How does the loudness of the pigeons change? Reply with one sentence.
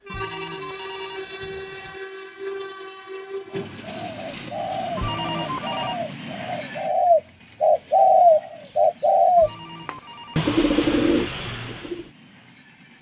The volume of the pigeons goes up, then down.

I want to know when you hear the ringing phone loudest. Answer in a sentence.
The loudest moment of the ringing phone is at 5 seconds.